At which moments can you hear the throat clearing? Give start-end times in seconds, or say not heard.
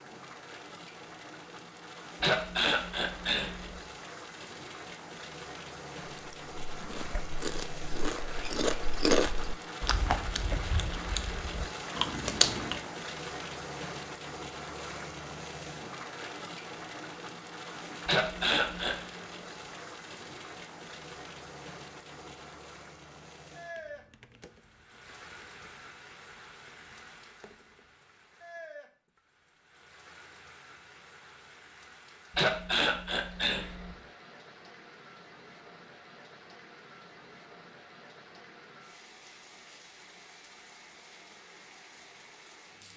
2.2-3.8, 18.1-19.0, 32.3-34.0.